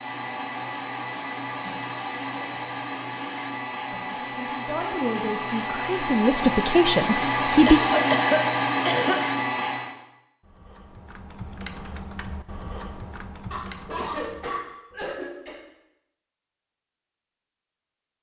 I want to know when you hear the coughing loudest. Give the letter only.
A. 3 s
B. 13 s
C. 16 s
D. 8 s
D.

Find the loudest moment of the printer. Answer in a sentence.
The volume of the printer peaks at 8 seconds.